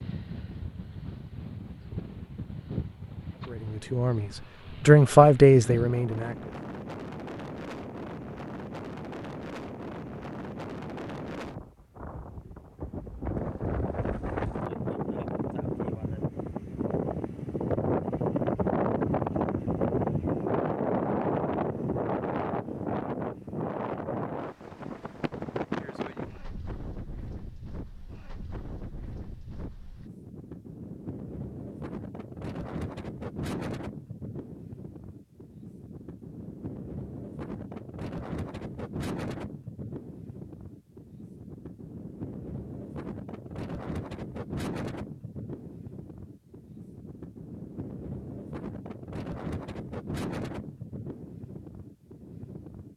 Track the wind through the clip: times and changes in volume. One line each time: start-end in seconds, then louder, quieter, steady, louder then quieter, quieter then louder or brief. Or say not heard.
0.0-52.9 louder then quieter.